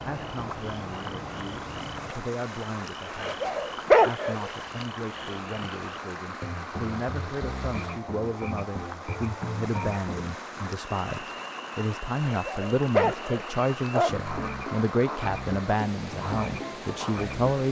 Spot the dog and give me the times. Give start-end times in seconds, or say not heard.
3.2-4.8, 12.2-14.2.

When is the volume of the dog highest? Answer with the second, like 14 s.
4 s.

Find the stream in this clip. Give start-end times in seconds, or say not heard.
0.0-17.6.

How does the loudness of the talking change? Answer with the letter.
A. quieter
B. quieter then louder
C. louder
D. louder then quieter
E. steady
C.